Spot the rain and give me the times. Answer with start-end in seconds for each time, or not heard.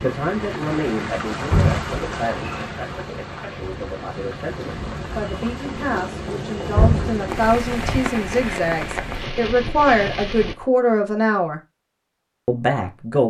0.0-10.6.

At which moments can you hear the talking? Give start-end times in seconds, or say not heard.
0.0-11.6, 12.4-13.2.